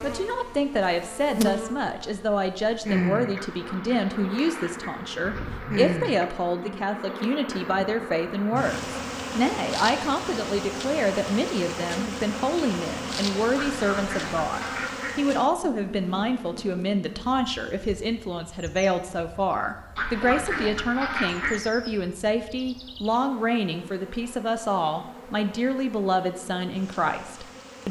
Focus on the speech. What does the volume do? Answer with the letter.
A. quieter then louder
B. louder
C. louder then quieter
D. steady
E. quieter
D.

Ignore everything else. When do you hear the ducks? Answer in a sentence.
You can hear the ducks from 3.4 to 5.8 s, from 13.6 to 15.2 s and from 19.9 to 21.6 s.